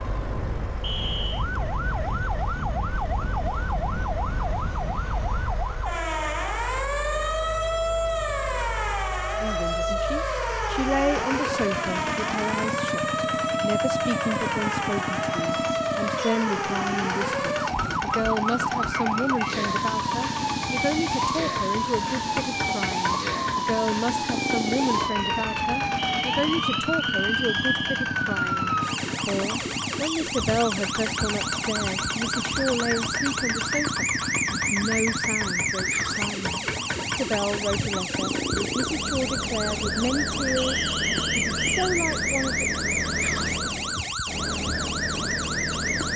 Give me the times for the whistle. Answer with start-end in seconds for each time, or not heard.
0.8-1.4, 25.9-28.1, 40.5-41.9.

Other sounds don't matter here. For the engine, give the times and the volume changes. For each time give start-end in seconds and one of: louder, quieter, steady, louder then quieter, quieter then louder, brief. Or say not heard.
0.0-46.1 louder.